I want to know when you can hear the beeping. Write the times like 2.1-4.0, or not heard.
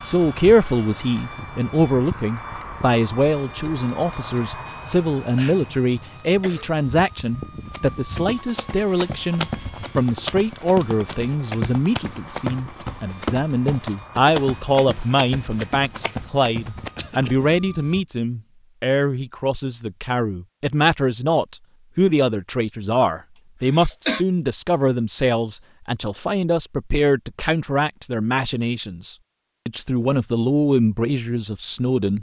not heard.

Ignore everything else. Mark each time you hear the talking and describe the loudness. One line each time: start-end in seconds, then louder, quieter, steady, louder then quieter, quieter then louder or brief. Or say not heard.
0.0-32.1 steady.